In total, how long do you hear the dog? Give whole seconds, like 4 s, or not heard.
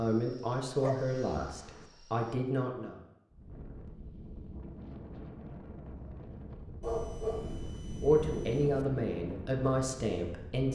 3 s.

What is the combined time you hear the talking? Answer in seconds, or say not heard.
6 s.